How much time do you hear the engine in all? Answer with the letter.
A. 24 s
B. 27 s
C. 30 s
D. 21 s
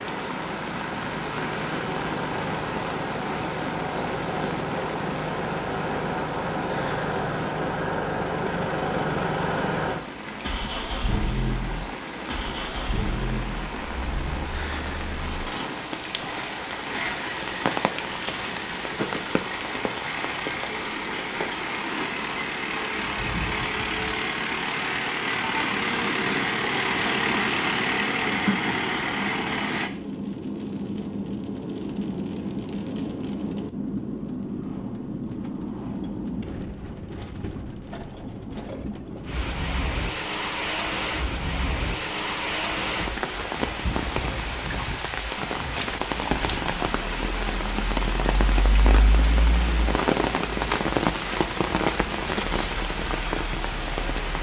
C.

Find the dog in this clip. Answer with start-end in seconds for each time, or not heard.
not heard.